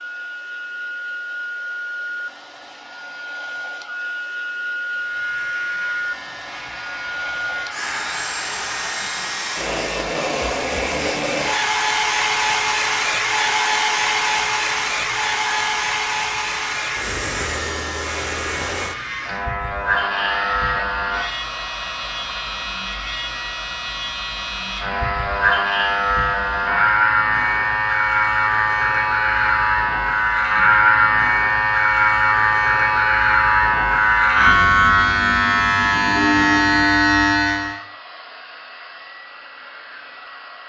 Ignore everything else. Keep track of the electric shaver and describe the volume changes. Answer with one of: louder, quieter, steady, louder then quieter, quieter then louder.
louder.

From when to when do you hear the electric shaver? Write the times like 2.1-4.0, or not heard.
4.8-37.8.